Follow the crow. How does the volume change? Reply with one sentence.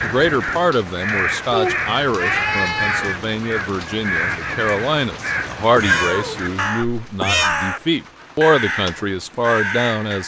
The loudness of the crow stays about the same.